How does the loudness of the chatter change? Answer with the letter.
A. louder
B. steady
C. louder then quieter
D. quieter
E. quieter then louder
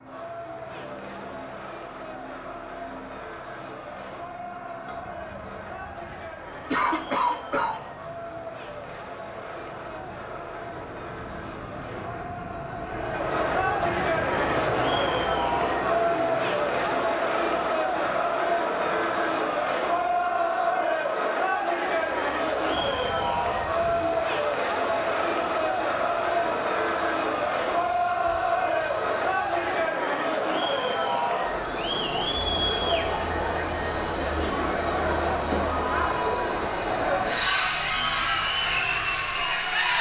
A.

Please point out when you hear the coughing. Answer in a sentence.
The coughing can be heard from 6.7 to 7.8 s.